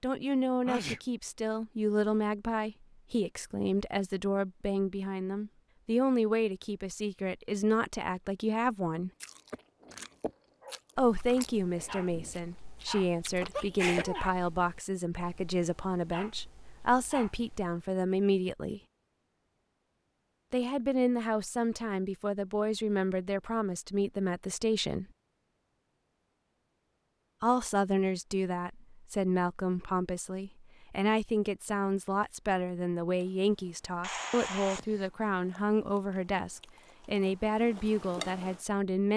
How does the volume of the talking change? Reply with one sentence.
The volume of the talking stays about the same.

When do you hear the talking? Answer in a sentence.
You can hear the talking from 0.0 to 9.1 s, from 10.9 to 18.8 s, from 20.5 to 25.1 s and from 27.4 to 39.1 s.